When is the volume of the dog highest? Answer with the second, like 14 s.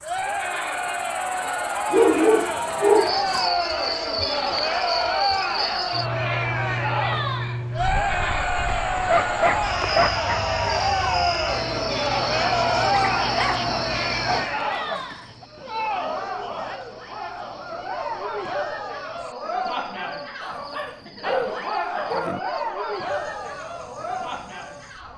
2 s.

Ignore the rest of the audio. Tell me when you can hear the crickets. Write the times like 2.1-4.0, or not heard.
0.0-25.1.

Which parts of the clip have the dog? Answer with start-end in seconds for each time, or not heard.
1.9-3.5, 8.7-10.4, 12.8-15.4, 20.4-22.4.